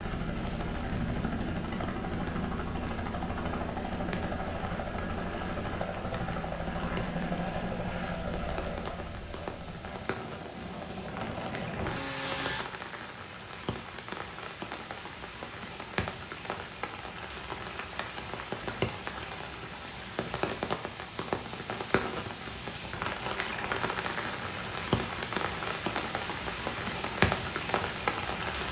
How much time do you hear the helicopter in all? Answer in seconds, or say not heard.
13 s.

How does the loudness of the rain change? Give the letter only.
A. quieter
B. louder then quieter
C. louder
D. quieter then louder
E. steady
C.